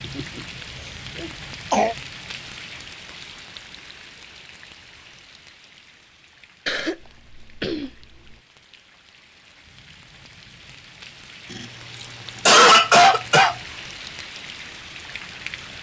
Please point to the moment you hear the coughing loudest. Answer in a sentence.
The loudest moment of the coughing is at 13 seconds.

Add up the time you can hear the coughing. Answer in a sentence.
You can hear the coughing for 5 seconds altogether.